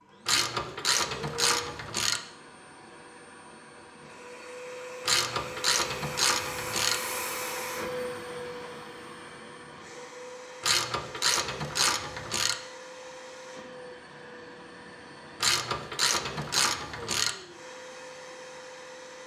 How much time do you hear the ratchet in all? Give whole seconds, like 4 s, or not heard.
8 s.